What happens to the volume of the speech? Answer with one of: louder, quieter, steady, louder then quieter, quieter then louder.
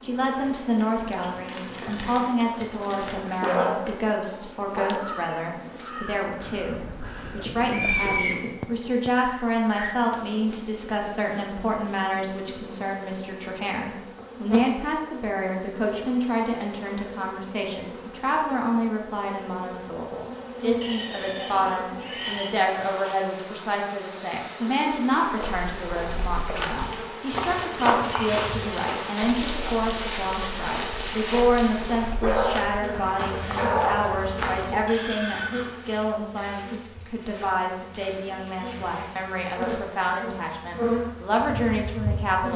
steady.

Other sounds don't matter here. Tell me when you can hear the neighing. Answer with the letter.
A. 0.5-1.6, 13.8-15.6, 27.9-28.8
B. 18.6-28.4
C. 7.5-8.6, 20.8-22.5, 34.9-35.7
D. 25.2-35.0
C.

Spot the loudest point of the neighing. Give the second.
8 s.